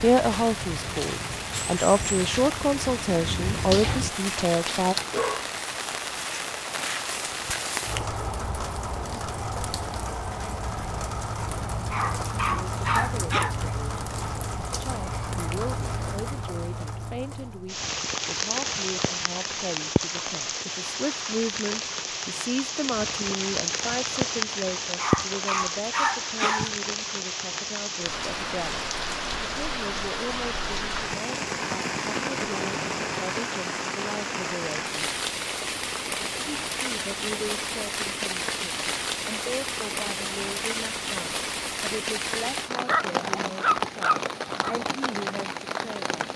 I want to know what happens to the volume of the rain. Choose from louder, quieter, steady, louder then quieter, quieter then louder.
steady.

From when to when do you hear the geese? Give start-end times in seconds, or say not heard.
not heard.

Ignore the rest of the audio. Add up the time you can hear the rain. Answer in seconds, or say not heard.
46 s.